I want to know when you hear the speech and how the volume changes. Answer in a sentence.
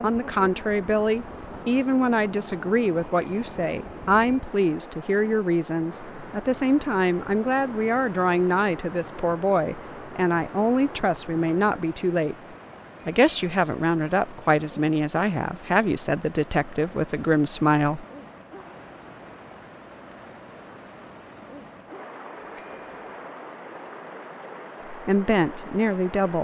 You can hear the speech from 0.0 to 12.3 s, at a steady volume; from 13.1 to 18.1 s, at a steady volume; and briefly from 24.9 to 26.4 s.